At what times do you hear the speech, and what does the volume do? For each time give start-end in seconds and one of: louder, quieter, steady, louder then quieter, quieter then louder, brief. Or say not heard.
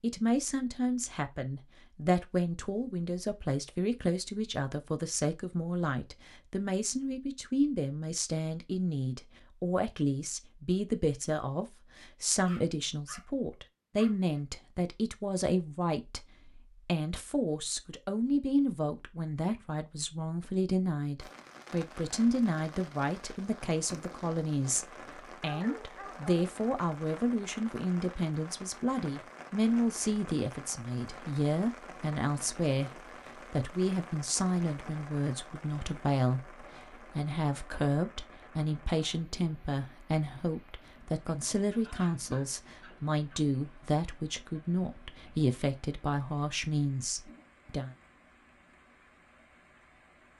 0.0-32.9 steady
33.5-48.0 steady.